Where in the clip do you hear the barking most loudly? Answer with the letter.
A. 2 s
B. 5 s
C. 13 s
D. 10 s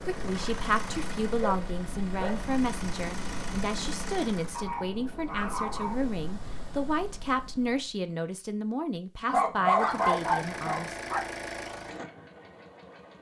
D.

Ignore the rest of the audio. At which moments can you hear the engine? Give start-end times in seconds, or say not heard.
0.0-4.7, 9.7-13.1.